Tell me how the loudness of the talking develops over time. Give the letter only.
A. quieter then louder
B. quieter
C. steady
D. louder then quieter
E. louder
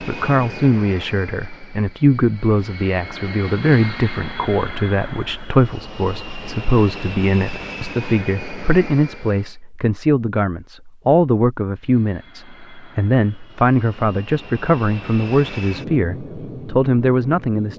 C.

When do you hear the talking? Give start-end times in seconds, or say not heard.
0.0-17.7.